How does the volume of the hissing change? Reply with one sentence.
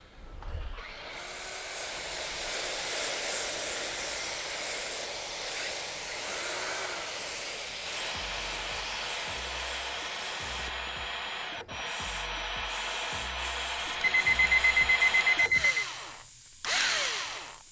The volume of the hissing goes down.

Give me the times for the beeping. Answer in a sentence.
You can hear the beeping from 14.0 to 15.8 s.